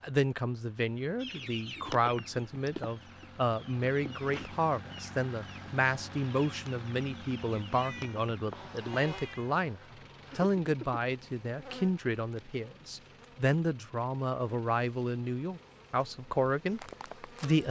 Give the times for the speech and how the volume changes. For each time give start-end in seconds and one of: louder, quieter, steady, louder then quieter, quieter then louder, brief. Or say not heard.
0.0-17.6 steady.